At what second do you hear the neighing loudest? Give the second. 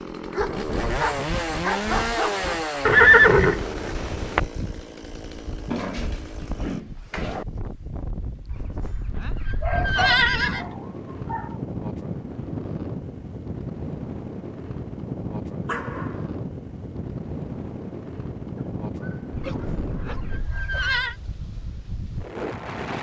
3 s.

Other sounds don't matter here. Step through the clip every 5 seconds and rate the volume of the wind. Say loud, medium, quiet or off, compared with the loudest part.
medium, medium, loud, loud, loud.